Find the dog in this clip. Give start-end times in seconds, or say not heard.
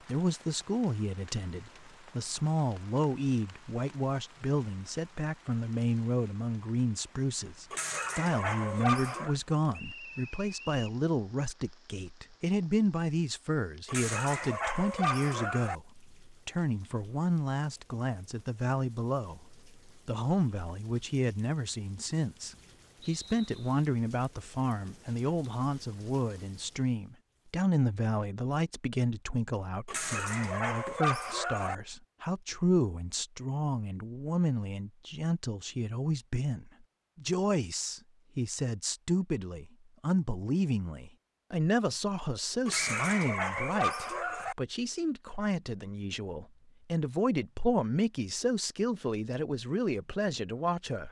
7.7-9.3, 13.8-15.8, 29.9-31.8, 42.6-44.5.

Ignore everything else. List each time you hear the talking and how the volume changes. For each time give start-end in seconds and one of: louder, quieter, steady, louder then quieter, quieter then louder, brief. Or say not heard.
0.1-51.0 steady.